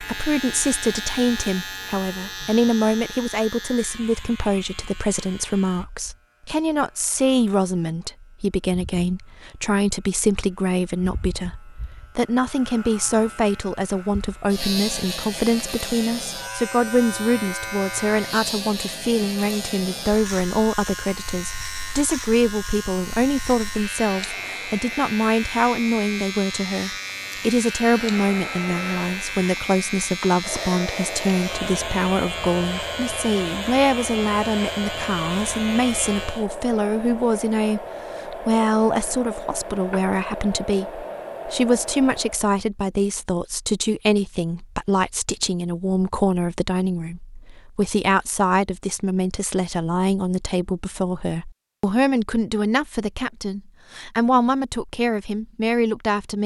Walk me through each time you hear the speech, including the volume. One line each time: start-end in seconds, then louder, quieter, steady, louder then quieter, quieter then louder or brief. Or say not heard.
0.0-56.4 steady.